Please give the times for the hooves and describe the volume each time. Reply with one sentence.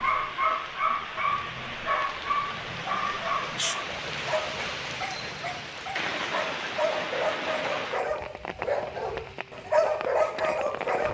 You can't hear the hooves here.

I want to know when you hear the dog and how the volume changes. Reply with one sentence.
The dog can be heard from 0.0 to 11.0 s, getting quieter then louder.